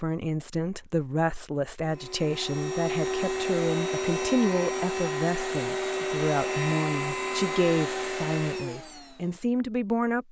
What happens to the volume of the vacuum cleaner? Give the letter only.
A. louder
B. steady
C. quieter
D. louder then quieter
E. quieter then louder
B.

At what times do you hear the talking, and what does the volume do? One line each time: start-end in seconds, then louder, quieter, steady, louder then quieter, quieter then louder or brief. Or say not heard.
0.0-10.2 steady.